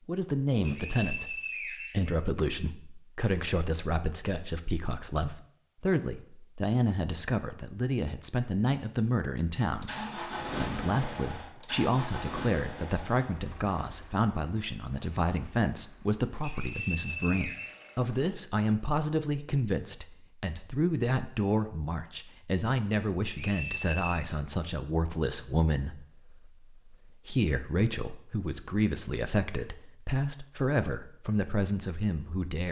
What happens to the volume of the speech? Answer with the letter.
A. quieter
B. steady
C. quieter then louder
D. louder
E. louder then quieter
B.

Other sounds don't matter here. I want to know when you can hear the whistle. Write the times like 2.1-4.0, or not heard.
0.7-2.1, 16.4-17.9, 23.2-24.2.